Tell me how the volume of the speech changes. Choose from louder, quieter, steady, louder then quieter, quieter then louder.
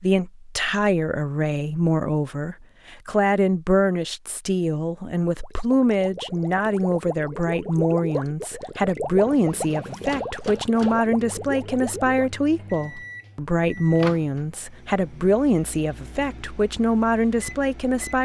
steady.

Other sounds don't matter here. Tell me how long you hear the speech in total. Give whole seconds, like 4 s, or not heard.
18 s.